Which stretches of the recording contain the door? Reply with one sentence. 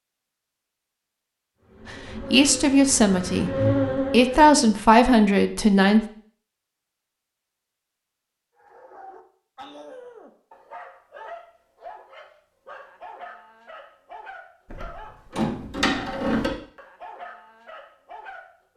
The door can be heard from 14.7 to 16.5 s.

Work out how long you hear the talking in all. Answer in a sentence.
The talking can be heard for 4 seconds in total.